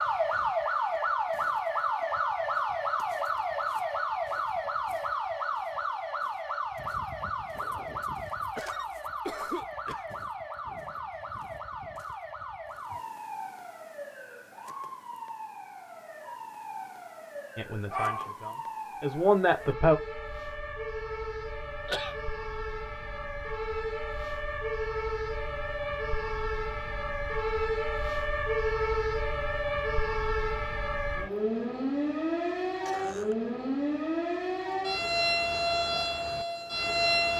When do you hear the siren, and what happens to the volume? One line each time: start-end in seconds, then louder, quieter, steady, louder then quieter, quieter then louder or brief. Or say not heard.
0.0-37.3 quieter then louder.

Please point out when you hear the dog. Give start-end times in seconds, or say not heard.
17.9-18.4.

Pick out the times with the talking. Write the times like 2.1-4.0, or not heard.
17.6-19.9.